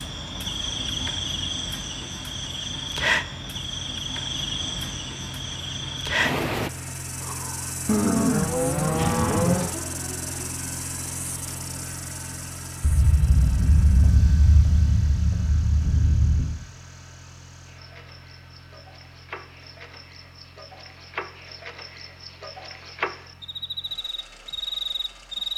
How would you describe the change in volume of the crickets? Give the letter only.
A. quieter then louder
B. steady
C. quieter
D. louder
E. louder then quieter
A.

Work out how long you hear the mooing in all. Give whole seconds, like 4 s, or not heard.
2 s.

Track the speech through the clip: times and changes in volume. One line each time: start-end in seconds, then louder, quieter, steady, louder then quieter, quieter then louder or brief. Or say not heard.
not heard.